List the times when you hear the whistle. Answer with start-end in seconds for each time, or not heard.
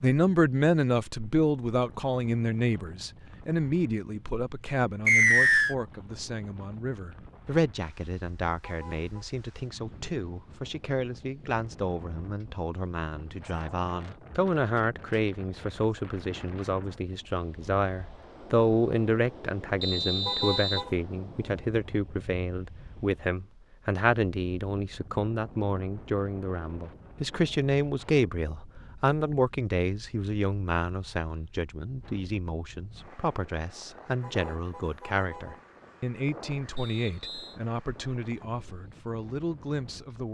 5.0-5.8, 19.8-20.9, 36.8-37.5.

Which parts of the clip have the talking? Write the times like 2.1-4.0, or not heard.
0.0-40.2.